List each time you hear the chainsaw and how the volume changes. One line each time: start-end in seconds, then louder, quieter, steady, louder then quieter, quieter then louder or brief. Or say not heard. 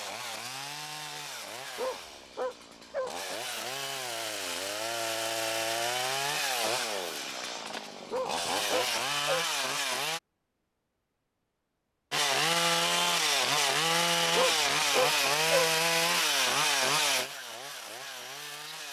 0.0-10.2 louder
12.1-18.8 quieter.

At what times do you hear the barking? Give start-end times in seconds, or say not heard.
1.8-3.1, 8.1-9.4, 14.3-15.7.